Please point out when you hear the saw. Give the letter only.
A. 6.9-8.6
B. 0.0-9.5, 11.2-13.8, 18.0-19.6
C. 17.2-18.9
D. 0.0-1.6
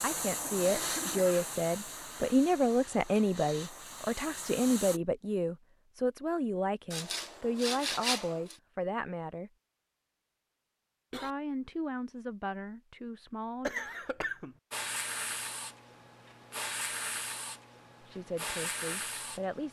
A.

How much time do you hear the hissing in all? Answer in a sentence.
You can hear the hissing for 10 seconds altogether.